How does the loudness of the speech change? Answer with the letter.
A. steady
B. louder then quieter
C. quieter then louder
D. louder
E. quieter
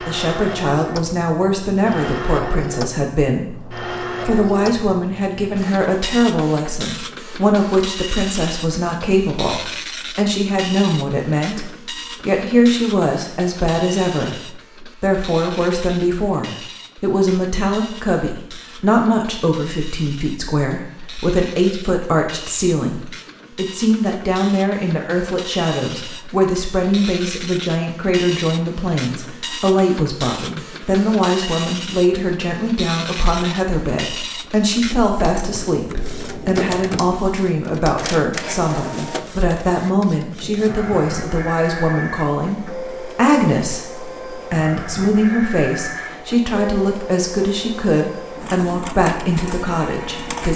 A.